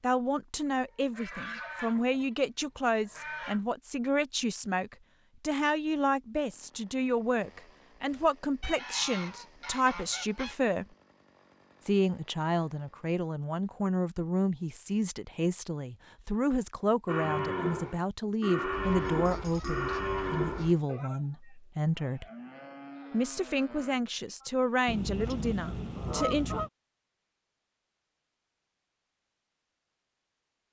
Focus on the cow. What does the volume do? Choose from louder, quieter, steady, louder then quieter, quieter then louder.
quieter.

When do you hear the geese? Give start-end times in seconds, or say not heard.
0.7-3.6, 8.6-10.6, 18.7-20.8, 24.9-26.7.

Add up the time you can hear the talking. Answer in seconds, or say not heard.
25 s.